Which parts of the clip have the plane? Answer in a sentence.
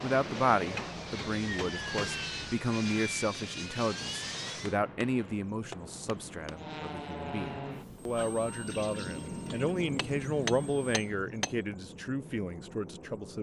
The plane can be heard from 0.0 to 4.8 s and from 6.5 to 10.9 s.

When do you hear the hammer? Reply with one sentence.
You can hear the hammer from 0.7 to 2.5 s, from 4.7 to 6.5 s and from 9.8 to 11.6 s.